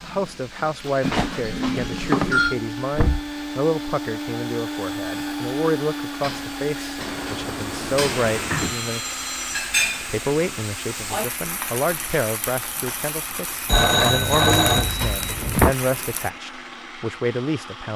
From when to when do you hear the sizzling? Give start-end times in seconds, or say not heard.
0.0-16.3.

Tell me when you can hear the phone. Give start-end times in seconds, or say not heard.
1.0-2.5, 8.6-9.6, 13.7-15.7.